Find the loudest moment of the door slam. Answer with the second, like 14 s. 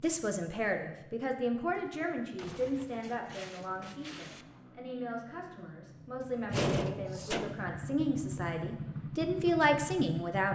7 s.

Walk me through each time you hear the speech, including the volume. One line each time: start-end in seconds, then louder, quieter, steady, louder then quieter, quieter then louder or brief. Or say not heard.
0.0-10.4 quieter then louder.